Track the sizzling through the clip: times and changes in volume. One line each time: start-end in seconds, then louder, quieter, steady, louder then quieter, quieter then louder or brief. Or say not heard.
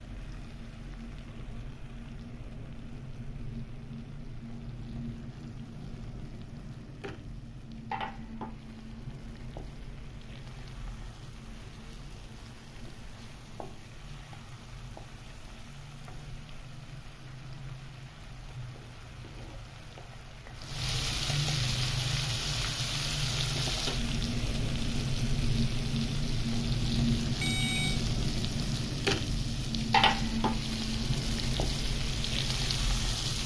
0.0-33.4 louder.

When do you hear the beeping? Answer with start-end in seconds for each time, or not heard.
27.4-28.0.